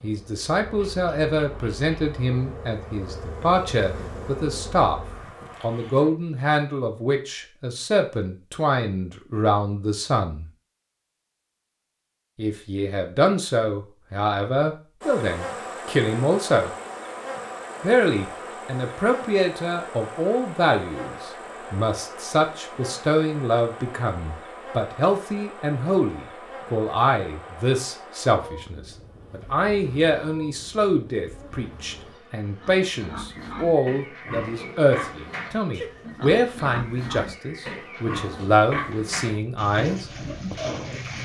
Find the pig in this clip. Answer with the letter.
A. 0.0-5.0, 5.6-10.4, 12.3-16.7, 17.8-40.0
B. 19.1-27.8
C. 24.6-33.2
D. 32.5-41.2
D.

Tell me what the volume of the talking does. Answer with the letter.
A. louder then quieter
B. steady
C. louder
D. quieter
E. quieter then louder
B.